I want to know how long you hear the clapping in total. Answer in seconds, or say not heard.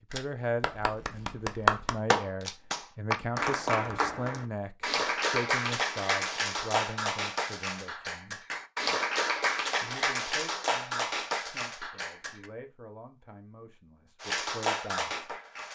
13 s.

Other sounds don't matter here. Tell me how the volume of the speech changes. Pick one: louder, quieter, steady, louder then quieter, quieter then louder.
quieter.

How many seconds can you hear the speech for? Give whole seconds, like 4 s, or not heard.
14 s.